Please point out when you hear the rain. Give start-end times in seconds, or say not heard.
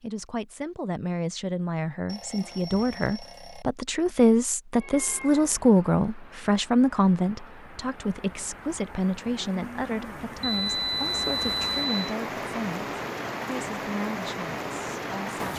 5.0-15.5.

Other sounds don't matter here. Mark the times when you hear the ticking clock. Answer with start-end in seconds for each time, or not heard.
not heard.